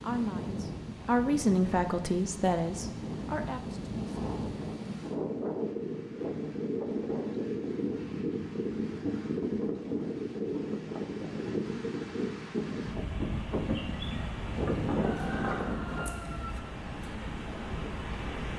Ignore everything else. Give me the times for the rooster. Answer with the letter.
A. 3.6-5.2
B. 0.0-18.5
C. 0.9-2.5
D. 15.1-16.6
D.